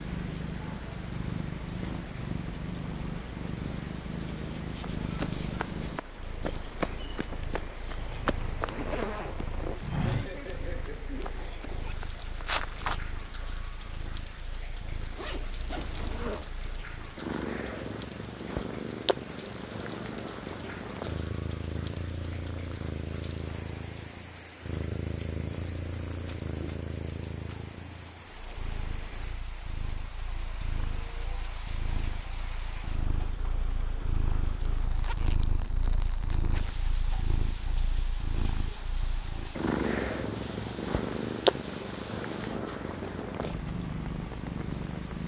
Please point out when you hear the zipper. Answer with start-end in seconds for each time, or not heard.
8.0-9.8, 15.2-16.5, 34.9-36.8.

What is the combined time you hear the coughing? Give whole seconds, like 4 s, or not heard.
2 s.